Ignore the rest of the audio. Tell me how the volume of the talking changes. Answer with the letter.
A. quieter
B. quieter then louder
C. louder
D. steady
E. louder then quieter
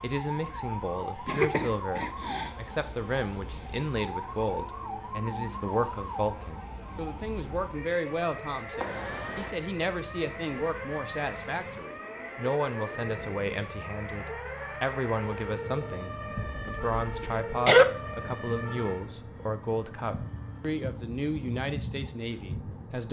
D.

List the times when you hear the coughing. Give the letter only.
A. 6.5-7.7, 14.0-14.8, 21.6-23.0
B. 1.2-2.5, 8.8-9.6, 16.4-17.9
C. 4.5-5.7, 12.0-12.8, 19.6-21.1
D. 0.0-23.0
B.